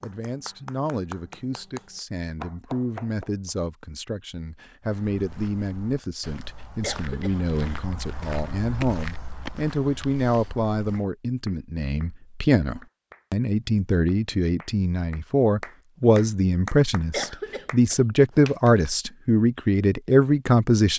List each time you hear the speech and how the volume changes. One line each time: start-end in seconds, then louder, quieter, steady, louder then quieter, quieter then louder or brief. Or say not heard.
0.0-20.9 louder.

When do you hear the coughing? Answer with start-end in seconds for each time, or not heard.
6.8-7.7, 17.1-17.9.